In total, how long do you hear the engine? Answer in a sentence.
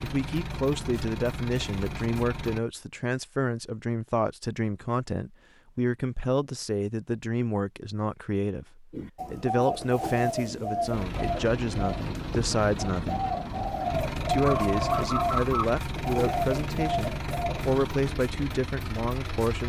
You can hear the engine for 11 seconds altogether.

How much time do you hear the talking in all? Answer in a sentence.
The talking can be heard for 19 seconds in total.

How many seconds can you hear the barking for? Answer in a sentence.
The barking can't be heard in this clip.